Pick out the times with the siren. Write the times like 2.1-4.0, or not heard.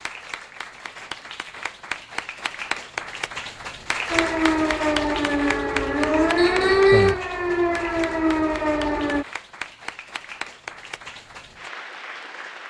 4.1-9.2.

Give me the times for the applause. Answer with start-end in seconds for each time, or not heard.
0.0-12.6.